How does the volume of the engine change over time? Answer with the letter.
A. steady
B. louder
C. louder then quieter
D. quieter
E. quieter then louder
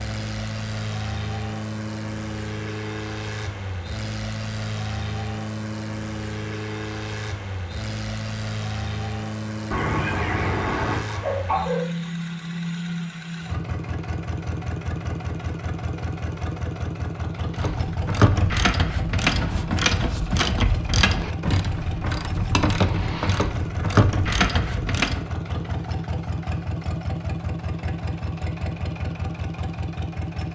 A.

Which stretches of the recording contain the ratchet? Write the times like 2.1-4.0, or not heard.
17.5-25.2.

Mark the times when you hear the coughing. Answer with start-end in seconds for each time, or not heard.
9.7-11.9.